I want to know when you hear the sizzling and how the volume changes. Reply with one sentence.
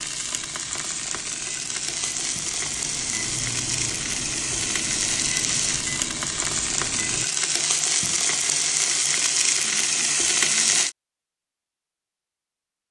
You can hear the sizzling from 0.0 to 10.9 s, getting louder.